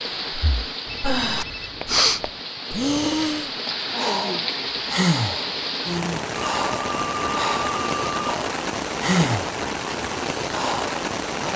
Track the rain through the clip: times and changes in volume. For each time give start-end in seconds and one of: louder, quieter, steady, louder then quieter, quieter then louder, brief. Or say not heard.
0.0-11.5 louder.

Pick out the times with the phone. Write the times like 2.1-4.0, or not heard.
0.8-2.3, 6.6-8.3.